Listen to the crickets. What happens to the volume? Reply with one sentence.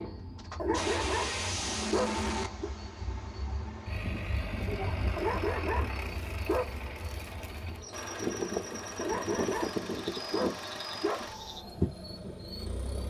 The volume of the crickets goes up.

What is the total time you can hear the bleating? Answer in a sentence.
The bleating can't be heard in this clip.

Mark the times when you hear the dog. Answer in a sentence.
You can hear the dog from 0.6 to 2.7 s, from 5.2 to 6.8 s and from 9.0 to 11.3 s.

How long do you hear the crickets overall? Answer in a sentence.
You can hear the crickets for 13 seconds altogether.